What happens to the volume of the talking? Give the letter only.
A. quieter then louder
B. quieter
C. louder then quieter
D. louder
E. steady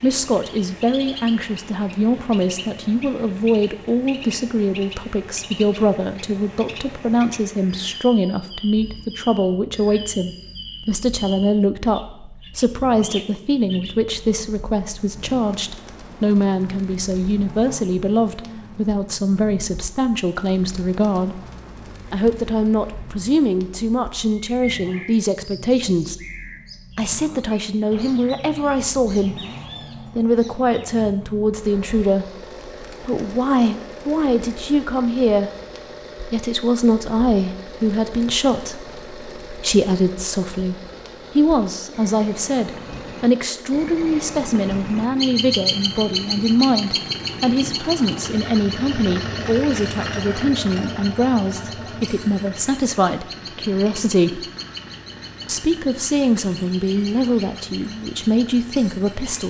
E.